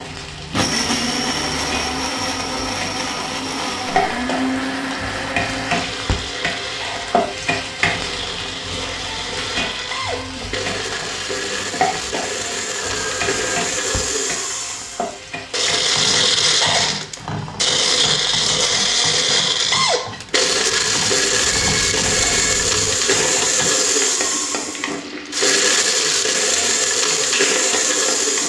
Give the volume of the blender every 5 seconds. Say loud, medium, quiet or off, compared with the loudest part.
medium, medium, medium, loud, loud, loud.